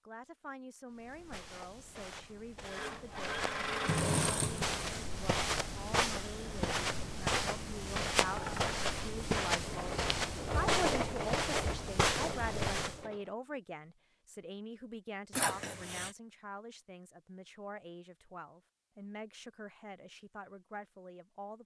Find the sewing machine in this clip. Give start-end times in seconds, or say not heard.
2.6-4.9, 8.2-13.3.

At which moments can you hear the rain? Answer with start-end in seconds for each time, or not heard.
not heard.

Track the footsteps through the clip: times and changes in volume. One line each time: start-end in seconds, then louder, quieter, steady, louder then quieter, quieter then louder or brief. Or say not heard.
0.9-13.1 louder.